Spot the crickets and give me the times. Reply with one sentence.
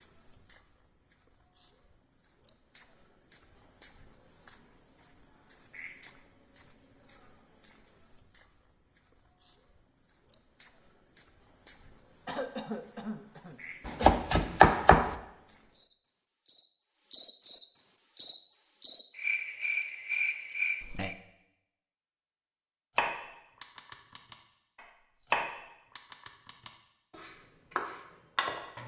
The crickets can be heard from 0.0 to 21.1 s.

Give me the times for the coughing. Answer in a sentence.
The coughing can be heard from 12.2 to 14.2 s.